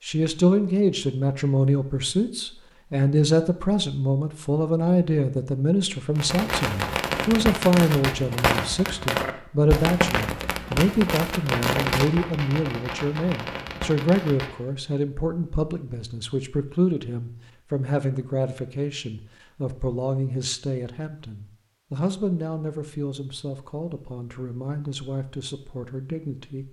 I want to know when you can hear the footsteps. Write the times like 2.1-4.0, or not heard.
not heard.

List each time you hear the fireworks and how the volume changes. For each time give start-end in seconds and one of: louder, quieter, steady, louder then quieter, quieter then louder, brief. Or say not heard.
6.2-14.6 quieter.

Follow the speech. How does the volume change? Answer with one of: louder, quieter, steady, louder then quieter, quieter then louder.
quieter.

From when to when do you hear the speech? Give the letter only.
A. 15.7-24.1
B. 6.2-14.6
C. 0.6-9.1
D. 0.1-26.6
D.